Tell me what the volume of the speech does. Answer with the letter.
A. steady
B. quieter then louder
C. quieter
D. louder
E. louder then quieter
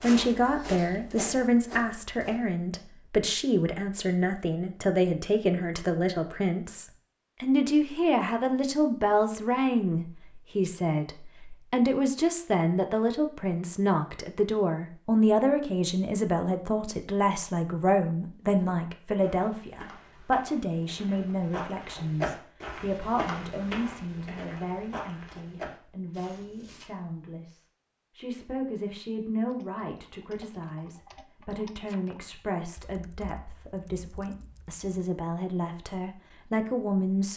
C.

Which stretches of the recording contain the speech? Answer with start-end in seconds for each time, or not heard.
0.0-37.3.